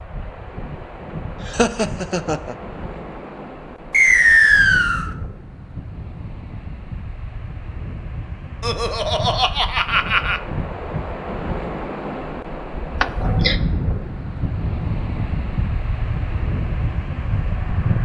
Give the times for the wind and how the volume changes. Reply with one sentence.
The wind can be heard from 0.0 to 18.0 s, getting louder.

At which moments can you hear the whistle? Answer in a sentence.
The whistle can be heard from 3.9 to 5.0 s.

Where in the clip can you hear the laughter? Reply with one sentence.
You can hear the laughter from 1.4 to 3.0 s, from 8.6 to 10.4 s and from 13.0 to 13.6 s.